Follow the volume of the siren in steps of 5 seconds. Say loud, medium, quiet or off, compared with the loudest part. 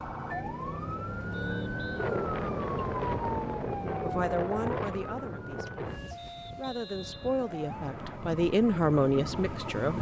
loud, medium.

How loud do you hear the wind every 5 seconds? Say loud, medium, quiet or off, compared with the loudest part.
loud, medium.